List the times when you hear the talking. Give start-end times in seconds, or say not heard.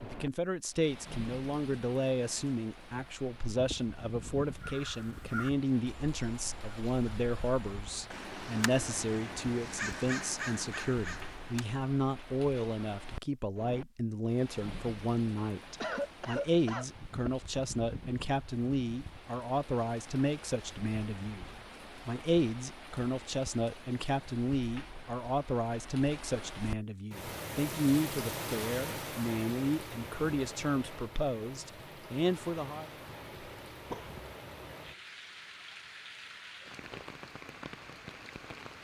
0.0-32.9.